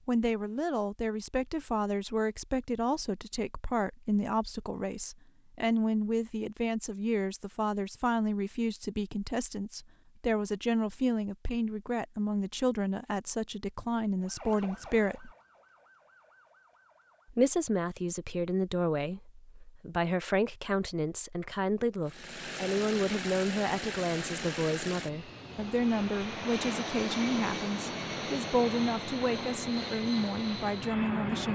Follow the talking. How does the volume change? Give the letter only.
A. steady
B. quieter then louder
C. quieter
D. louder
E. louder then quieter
A.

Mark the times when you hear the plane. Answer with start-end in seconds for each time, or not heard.
22.1-31.5.